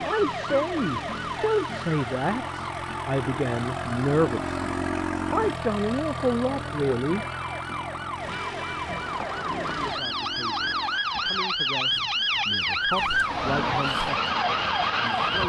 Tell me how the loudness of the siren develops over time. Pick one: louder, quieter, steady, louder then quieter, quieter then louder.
quieter then louder.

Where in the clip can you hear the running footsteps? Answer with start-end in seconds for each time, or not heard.
not heard.